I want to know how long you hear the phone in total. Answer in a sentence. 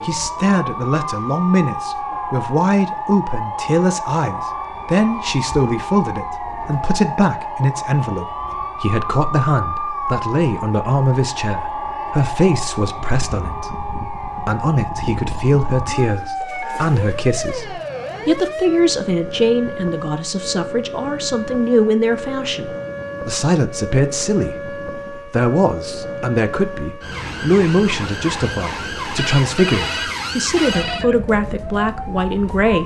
You can hear the phone for 2 seconds altogether.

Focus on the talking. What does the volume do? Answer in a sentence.
The volume of the talking stays about the same.